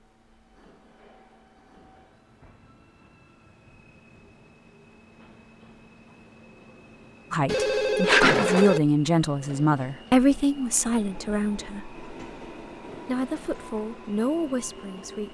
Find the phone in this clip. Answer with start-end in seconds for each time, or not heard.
7.5-8.8.